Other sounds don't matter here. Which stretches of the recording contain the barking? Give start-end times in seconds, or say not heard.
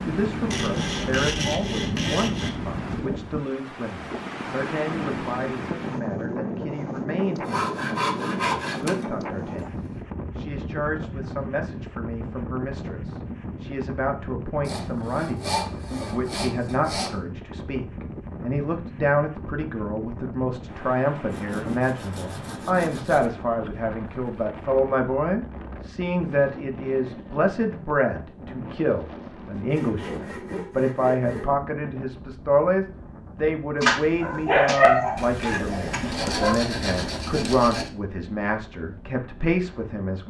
33.8-36.6.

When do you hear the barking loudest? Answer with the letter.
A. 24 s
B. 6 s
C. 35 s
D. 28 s
C.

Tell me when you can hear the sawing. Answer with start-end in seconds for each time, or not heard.
0.5-2.5, 7.2-10.0, 14.7-17.1, 21.3-23.3, 29.6-31.6, 35.1-37.9.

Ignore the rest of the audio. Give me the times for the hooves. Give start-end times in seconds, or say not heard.
not heard.